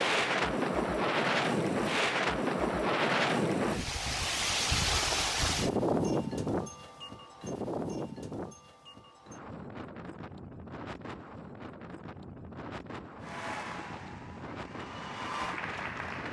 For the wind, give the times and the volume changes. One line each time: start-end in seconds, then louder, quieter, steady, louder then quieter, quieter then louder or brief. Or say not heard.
0.0-16.2 quieter.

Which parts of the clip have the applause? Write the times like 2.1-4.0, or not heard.
13.2-16.2.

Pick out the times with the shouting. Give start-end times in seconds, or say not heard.
not heard.